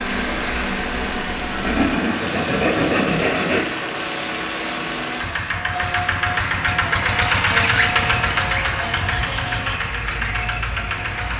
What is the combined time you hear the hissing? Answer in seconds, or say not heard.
11 s.